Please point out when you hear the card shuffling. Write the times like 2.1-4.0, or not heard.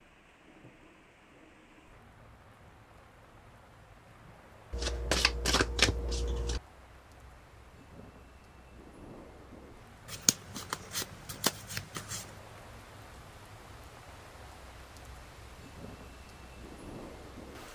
4.7-6.6, 10.1-12.2.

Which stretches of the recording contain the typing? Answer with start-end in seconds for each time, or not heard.
not heard.